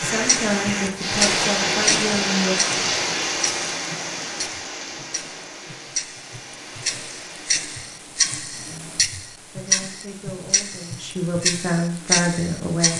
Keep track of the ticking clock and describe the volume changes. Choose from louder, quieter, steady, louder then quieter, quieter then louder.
quieter then louder.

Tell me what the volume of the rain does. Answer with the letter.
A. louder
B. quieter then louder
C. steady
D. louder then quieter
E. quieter
E.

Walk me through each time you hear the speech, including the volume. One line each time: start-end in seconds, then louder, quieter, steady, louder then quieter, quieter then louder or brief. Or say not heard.
0.0-2.5 brief
8.7-12.9 louder.